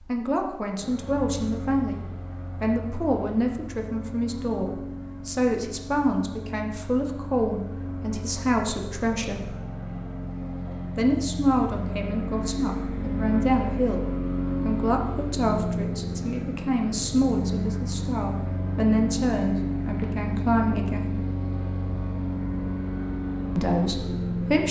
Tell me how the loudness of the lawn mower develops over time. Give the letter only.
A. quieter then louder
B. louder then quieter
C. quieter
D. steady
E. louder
E.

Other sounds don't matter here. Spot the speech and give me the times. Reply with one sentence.
The speech can be heard from 0.0 to 2.0 s, from 2.6 to 9.6 s, from 10.9 to 21.2 s and from 23.6 to 24.6 s.